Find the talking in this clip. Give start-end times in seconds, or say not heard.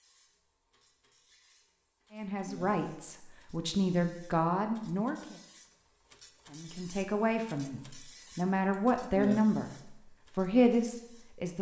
2.1-5.3, 6.5-9.8, 10.3-11.5.